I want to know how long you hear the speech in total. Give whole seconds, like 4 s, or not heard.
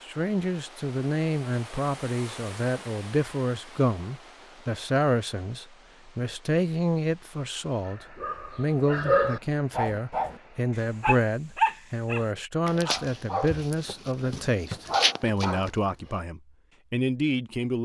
18 s.